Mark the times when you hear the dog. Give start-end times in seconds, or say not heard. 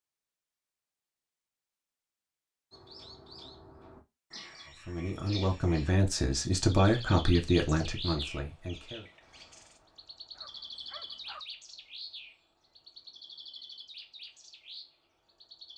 10.3-11.4.